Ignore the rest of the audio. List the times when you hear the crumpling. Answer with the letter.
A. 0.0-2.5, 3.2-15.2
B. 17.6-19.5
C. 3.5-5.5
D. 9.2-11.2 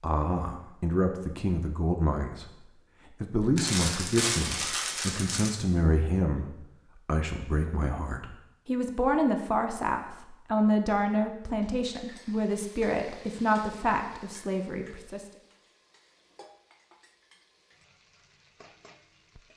C.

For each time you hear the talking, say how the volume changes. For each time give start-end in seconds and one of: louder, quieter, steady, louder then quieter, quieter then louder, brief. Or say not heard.
0.0-2.5 brief
3.2-15.2 steady.